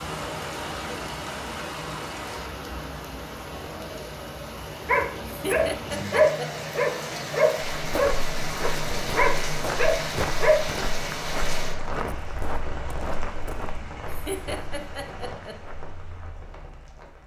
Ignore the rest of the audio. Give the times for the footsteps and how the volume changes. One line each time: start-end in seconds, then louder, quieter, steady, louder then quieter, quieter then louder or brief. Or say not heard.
7.8-16.4 quieter.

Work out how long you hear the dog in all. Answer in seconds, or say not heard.
6 s.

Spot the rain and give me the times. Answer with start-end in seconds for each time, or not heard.
0.0-17.2.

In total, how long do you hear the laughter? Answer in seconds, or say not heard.
3 s.